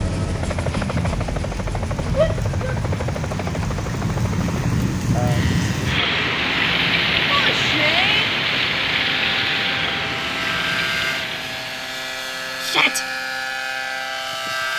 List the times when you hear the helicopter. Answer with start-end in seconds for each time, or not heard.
0.0-14.7.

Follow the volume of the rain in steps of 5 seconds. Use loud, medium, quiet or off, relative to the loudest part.
medium, loud, medium.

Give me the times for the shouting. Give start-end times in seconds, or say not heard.
2.1-2.8, 7.3-8.3, 12.6-13.1.